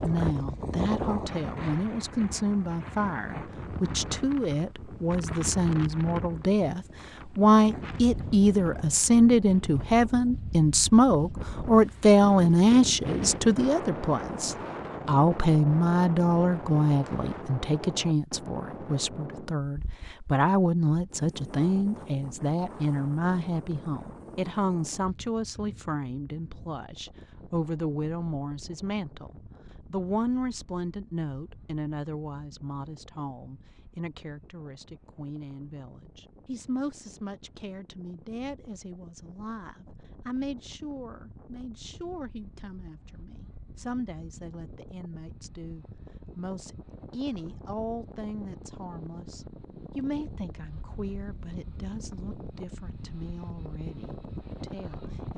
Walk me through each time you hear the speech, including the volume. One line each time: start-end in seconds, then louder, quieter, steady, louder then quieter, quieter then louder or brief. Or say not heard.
0.0-55.3 quieter.